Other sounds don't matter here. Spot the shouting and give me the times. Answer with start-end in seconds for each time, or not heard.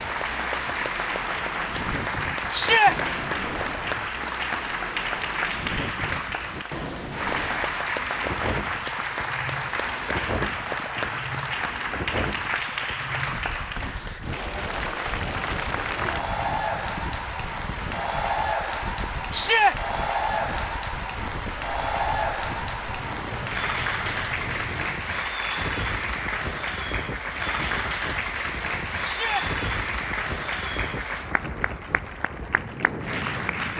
2.5-3.0, 19.3-19.8, 29.0-29.4.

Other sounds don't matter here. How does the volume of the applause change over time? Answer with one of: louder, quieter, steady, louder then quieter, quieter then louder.
steady.